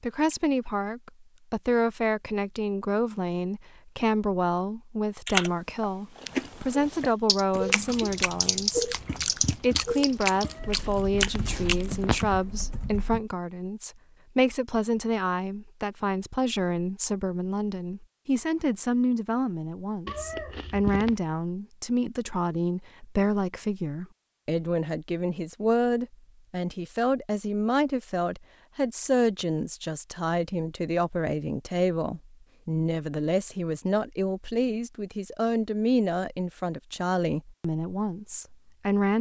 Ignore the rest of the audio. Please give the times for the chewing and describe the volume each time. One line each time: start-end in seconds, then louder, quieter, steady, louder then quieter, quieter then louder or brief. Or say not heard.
6.2-12.2 louder.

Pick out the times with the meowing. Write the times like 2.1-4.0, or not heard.
10.4-12.2, 20.1-21.1.